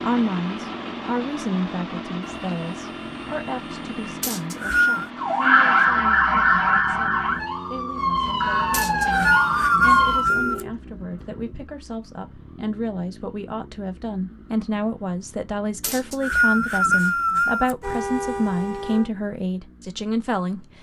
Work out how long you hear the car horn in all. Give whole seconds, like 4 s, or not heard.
5 s.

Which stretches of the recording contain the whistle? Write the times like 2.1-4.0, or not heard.
4.2-5.1, 8.7-10.6, 15.8-17.8.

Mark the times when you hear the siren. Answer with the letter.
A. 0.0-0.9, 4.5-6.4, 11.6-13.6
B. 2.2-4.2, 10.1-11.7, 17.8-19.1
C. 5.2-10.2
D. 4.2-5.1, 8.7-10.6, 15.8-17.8
C.